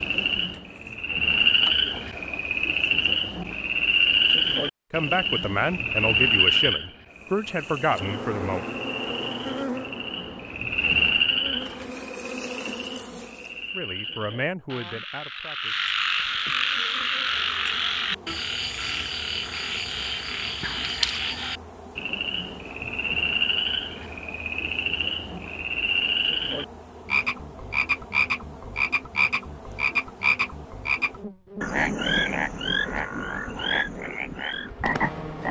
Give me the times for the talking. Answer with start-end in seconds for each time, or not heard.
4.9-8.7, 13.7-15.8.